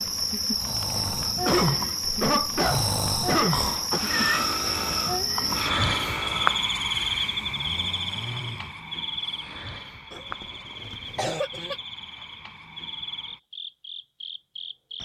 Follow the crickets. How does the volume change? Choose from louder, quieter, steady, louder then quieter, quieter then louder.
quieter.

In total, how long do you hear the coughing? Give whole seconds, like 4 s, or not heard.
4 s.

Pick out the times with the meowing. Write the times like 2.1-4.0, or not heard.
3.9-4.5.